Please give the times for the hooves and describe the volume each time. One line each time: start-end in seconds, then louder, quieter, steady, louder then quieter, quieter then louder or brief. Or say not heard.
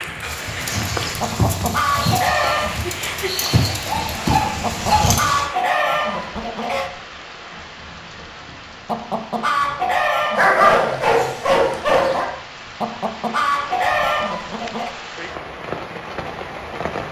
0.2-5.5 quieter then louder.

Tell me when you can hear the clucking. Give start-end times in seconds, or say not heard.
1.2-2.8, 4.6-6.9, 8.8-10.9, 12.8-14.9.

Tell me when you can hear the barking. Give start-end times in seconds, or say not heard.
3.9-5.2, 10.3-12.2.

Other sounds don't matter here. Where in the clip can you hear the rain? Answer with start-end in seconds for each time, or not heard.
0.0-17.0.